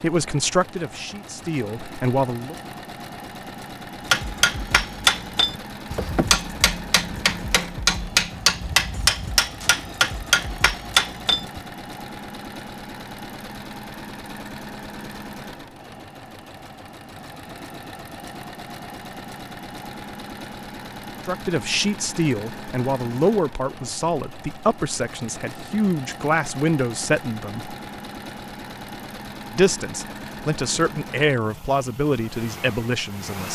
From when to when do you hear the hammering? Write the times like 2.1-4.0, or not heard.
4.1-11.6.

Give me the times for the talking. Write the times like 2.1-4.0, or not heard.
0.0-2.5, 21.2-27.8, 29.5-33.4.